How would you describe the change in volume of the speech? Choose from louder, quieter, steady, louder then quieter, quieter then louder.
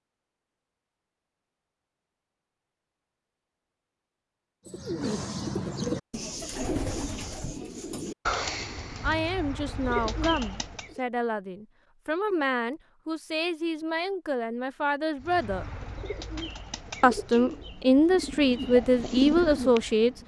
louder.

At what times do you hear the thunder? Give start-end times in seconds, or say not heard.
not heard.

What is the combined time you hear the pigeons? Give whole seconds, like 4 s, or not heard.
11 s.